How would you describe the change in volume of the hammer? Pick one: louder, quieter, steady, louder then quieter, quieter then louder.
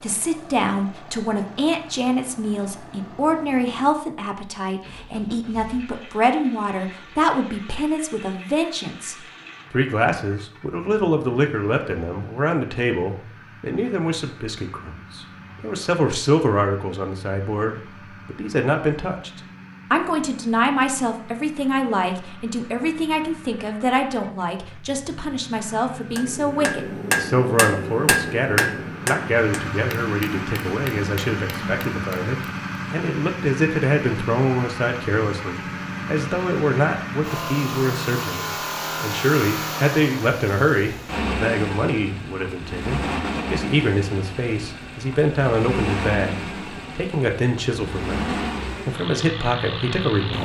quieter.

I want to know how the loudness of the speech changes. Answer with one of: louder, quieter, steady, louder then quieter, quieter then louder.
steady.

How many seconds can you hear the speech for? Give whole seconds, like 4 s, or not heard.
50 s.